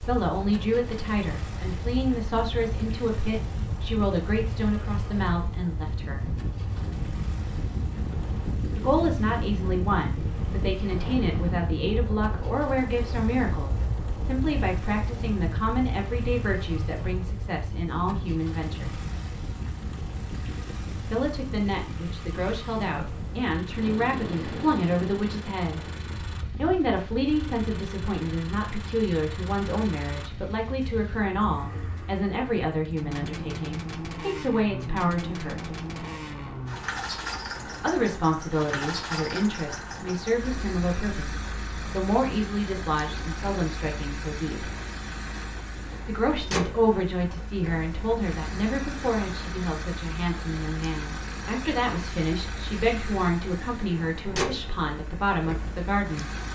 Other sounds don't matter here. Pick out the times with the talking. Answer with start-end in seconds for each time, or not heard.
0.0-6.3, 8.8-18.9, 21.0-25.8, 26.6-35.7, 37.8-44.7, 46.0-56.3.